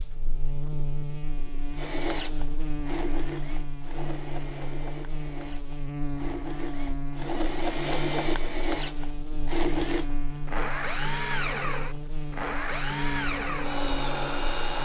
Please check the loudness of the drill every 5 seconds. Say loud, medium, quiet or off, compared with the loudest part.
medium, loud, loud.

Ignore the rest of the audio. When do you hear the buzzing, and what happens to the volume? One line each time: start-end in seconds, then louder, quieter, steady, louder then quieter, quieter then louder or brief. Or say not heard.
0.0-14.8 steady.